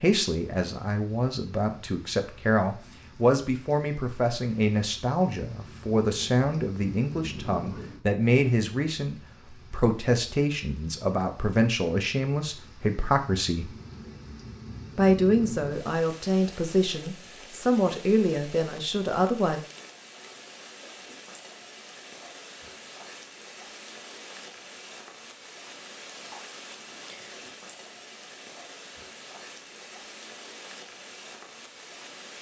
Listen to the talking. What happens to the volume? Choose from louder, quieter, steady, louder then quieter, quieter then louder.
steady.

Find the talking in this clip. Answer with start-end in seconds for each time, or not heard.
0.0-13.7, 14.9-19.6.